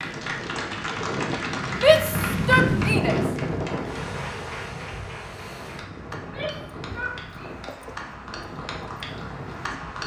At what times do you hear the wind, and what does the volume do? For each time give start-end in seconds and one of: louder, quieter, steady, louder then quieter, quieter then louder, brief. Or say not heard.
0.0-10.0 louder then quieter.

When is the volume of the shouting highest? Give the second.
2 s.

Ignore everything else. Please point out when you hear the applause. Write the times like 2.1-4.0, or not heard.
0.0-10.0.